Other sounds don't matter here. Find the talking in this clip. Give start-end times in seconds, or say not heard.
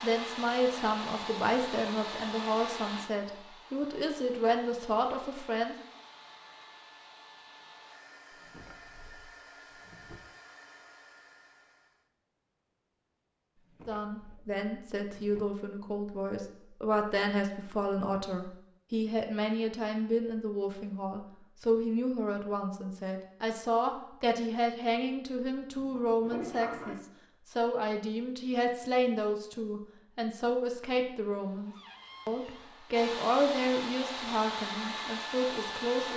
0.0-5.8, 13.8-36.1.